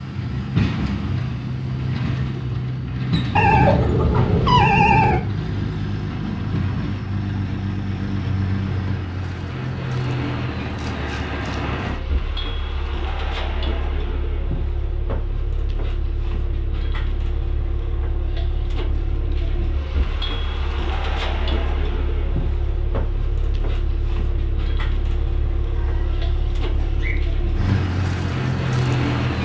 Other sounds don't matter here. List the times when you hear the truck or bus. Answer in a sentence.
The truck or bus can be heard from 0.0 to 29.4 s.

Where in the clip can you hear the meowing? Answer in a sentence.
You can hear the meowing from 3.4 to 5.2 s and from 25.8 to 27.1 s.